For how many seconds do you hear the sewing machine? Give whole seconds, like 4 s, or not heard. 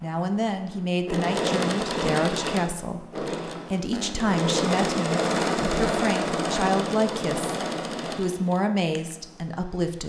10 s.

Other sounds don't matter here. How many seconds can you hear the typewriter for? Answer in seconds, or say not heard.
not heard.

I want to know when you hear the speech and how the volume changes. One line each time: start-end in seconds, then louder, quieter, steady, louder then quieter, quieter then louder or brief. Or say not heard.
0.0-10.0 steady.